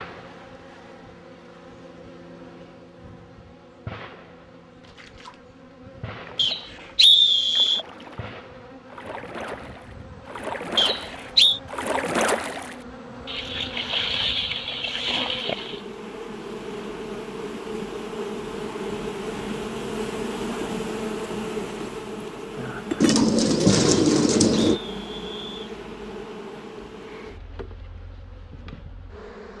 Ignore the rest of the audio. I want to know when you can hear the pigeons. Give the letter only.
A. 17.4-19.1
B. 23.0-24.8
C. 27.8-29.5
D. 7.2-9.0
B.